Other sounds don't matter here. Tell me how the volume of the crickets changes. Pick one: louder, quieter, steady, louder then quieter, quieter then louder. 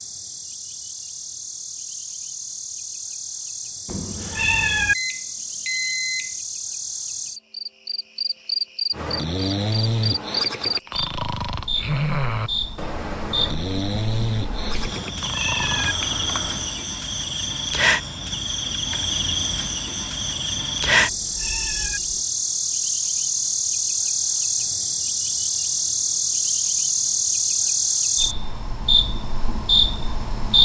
louder.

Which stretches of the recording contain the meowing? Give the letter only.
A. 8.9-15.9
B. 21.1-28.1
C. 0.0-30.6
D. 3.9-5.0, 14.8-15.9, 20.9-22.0
D.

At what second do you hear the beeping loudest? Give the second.
6 s.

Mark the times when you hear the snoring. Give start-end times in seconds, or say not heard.
8.9-15.9.